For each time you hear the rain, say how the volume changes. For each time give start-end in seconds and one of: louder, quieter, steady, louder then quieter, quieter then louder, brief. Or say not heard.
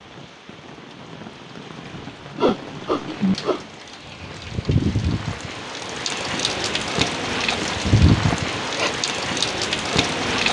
0.0-10.4 louder.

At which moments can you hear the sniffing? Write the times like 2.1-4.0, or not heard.
1.9-3.6, 8.3-8.9.